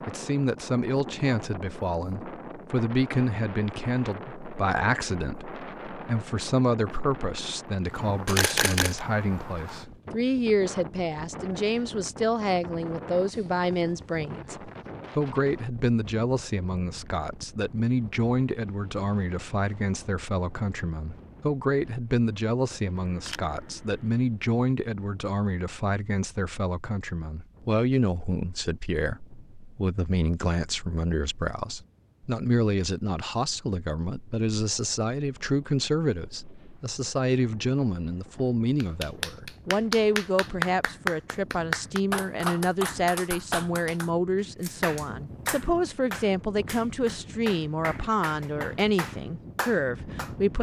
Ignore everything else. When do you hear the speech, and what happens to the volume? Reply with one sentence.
The speech can be heard from 0.1 to 50.5 s, at a steady volume.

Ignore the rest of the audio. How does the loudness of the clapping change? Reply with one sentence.
The loudness of the clapping goes down.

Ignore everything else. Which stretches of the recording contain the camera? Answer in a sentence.
The camera can be heard from 8.2 to 9.0 s, from 22.9 to 24.2 s and from 44.5 to 45.7 s.